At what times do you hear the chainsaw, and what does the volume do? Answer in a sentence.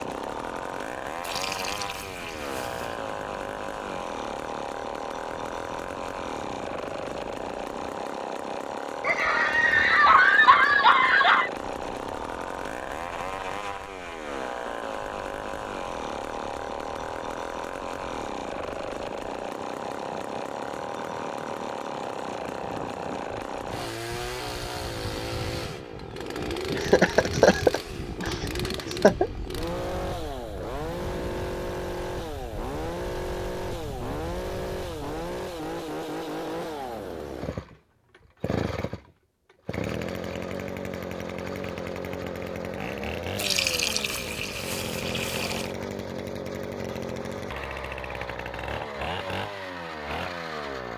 The chainsaw can be heard from 0.0 to 50.9 s, at a steady volume.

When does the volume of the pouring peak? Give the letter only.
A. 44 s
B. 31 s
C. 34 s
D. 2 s
A.